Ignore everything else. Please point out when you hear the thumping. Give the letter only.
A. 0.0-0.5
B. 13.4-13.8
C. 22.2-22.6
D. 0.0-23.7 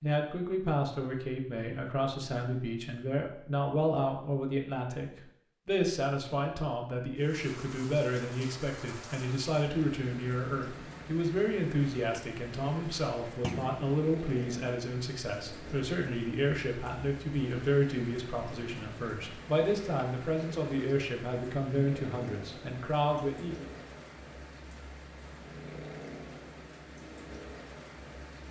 B.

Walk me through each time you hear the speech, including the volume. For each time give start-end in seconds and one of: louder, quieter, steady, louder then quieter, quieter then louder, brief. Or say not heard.
0.0-23.7 steady.